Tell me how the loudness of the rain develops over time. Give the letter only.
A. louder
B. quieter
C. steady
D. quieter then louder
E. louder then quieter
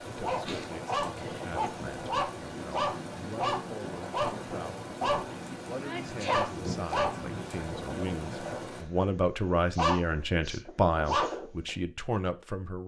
C.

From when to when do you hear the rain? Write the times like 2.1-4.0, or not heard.
0.0-8.8.